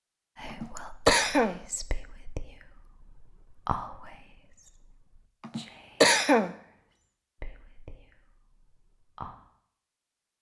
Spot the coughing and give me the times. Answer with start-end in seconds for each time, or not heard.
0.5-1.6, 5.5-6.5.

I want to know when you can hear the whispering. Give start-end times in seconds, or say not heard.
0.3-9.3.